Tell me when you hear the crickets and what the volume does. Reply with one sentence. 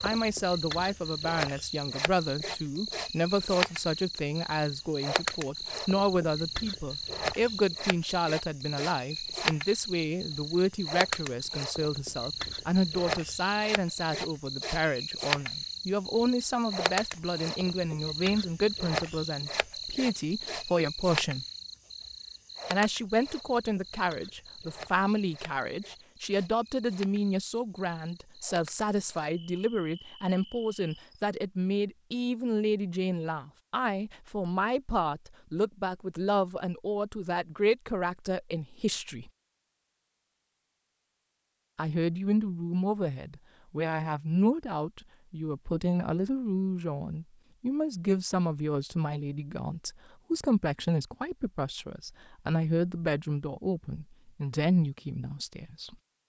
You can hear the crickets from 0.0 to 31.2 s, getting quieter.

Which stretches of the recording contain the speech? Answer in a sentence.
The speech can be heard from 0.0 to 21.4 s, from 22.7 to 39.3 s and from 41.8 to 56.0 s.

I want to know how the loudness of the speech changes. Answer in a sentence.
The volume of the speech stays about the same.